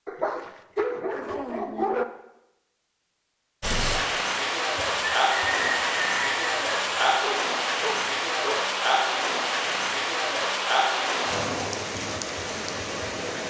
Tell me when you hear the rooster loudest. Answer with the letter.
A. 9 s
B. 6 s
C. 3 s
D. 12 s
B.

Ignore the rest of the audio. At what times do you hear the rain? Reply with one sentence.
You can hear the rain from 3.6 to 13.4 s.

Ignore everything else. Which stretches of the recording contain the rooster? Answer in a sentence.
You can hear the rooster from 4.8 to 7.2 s.